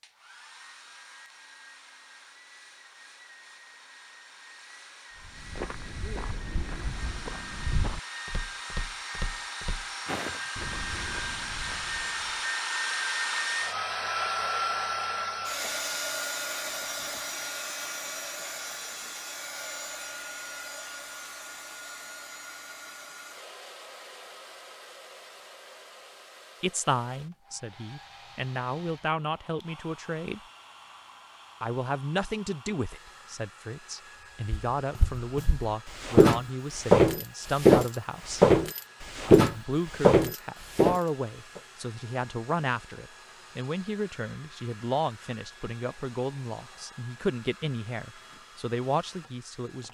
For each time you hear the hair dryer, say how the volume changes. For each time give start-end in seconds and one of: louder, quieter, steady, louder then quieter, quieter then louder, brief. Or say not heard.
0.0-49.8 louder then quieter.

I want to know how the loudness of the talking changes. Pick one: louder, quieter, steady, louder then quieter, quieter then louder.
steady.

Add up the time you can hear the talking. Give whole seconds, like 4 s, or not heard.
21 s.